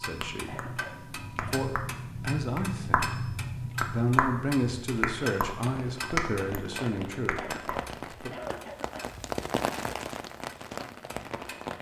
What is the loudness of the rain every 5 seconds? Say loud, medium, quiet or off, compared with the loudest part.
off, loud, loud.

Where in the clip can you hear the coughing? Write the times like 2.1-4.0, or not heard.
0.5-1.6, 7.3-9.1.